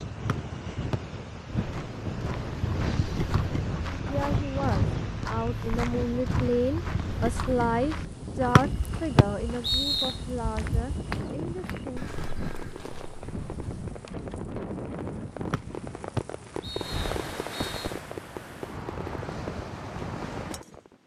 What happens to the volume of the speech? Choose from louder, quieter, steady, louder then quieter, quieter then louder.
louder then quieter.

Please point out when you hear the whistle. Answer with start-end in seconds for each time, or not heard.
0.2-1.0, 8.6-10.2, 15.5-17.9.